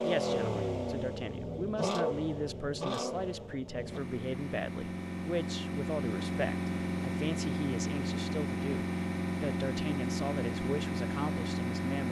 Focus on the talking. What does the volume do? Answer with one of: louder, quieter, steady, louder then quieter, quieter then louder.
steady.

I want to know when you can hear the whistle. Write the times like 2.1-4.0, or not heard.
not heard.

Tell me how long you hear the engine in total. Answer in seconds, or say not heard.
12 s.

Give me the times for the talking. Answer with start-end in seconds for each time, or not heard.
0.0-12.0.